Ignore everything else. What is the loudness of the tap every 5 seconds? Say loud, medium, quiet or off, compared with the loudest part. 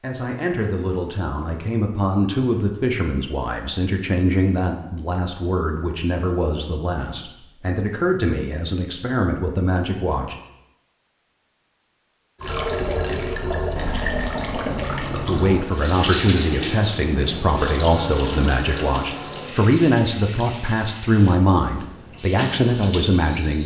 off, off, loud, loud, medium.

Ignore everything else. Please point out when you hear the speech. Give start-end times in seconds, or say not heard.
0.0-10.3, 15.2-23.6.